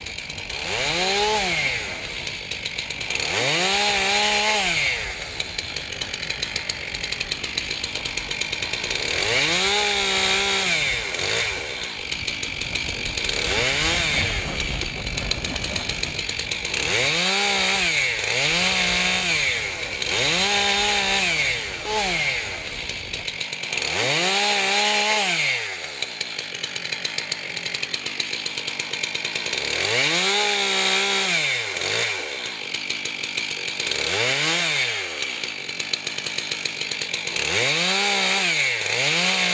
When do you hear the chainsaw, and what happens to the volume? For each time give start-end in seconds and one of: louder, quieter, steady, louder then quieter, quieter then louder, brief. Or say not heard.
0.0-39.5 steady.